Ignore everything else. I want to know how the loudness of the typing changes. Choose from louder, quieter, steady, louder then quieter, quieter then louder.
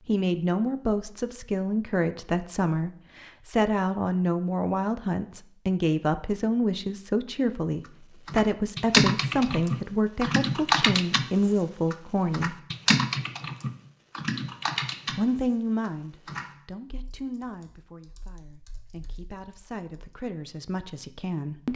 quieter.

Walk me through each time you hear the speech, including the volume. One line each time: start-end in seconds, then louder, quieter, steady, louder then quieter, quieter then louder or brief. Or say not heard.
0.1-12.6 steady
15.1-21.7 quieter then louder.